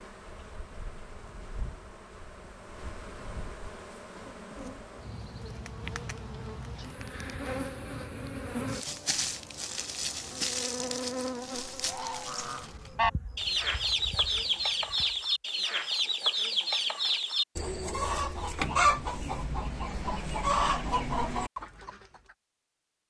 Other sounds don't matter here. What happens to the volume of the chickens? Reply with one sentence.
The loudness of the chickens stays about the same.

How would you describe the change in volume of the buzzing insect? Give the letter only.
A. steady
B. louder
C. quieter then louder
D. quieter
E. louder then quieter
E.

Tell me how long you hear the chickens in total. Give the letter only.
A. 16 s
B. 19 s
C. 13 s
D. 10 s
D.